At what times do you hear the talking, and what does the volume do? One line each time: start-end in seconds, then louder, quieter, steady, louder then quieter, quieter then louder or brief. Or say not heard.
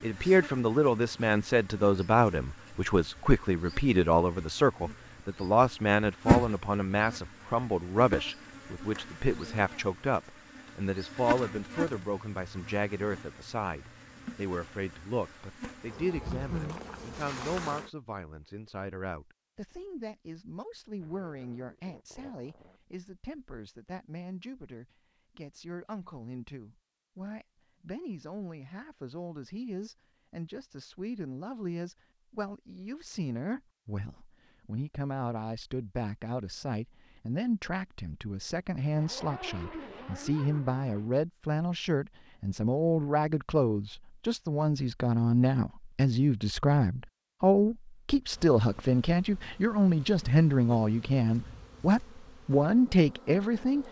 0.0-53.8 quieter then louder.